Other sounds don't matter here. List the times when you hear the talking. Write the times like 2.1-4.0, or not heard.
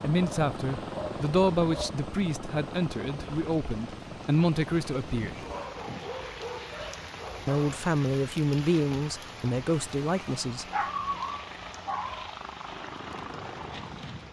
0.0-5.5, 7.5-10.7.